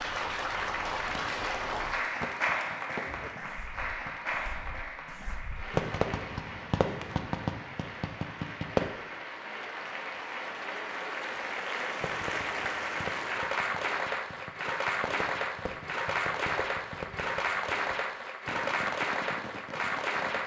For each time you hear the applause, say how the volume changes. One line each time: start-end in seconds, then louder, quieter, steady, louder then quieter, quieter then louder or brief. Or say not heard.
0.0-20.4 quieter then louder.